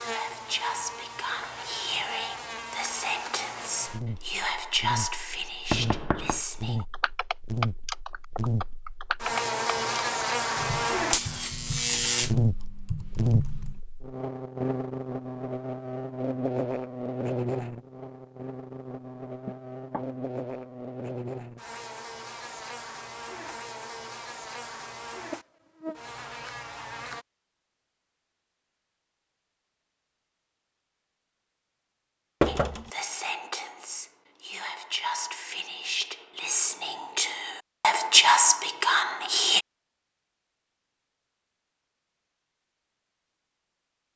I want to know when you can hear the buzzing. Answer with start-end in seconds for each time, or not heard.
0.0-27.2.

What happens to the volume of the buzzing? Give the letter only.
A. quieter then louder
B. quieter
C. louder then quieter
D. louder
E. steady
C.